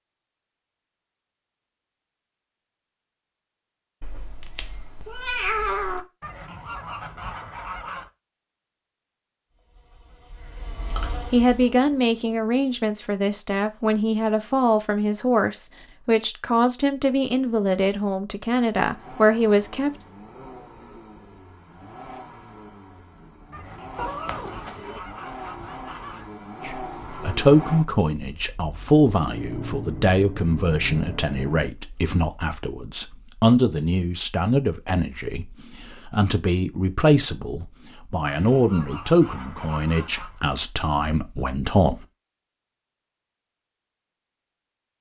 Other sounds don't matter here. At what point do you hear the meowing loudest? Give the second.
6 s.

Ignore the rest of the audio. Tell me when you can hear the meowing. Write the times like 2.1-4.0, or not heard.
4.0-6.0, 23.9-25.0.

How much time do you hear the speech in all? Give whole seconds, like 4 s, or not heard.
24 s.